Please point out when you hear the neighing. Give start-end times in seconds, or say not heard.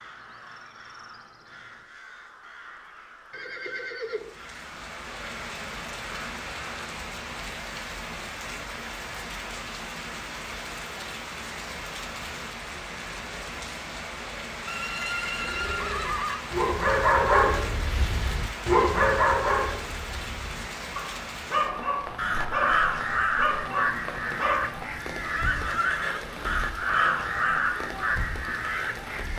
3.3-4.3, 14.7-16.4, 25.4-26.6.